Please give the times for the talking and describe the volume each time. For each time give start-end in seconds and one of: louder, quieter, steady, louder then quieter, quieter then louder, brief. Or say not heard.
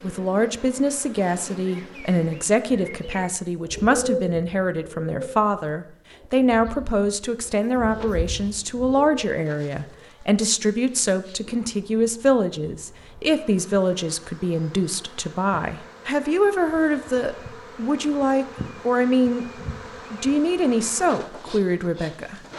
0.0-19.4 steady
20.1-22.4 brief.